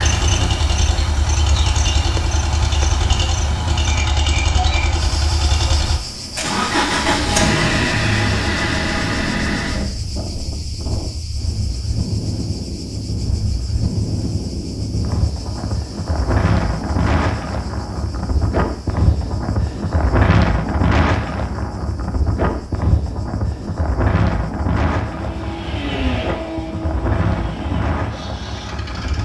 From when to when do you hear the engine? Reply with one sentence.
The engine can be heard from 0.0 to 9.9 s and from 25.0 to 29.2 s.